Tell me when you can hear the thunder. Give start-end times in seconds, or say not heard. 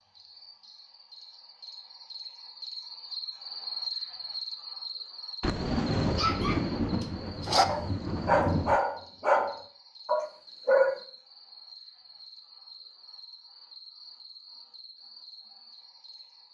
5.4-8.8.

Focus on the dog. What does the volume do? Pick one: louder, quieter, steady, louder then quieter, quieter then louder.
louder.